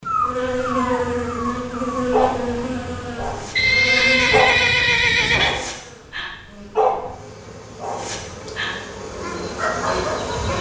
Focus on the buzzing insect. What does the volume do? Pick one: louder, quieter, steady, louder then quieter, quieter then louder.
quieter then louder.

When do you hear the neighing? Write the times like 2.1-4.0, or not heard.
3.5-5.6.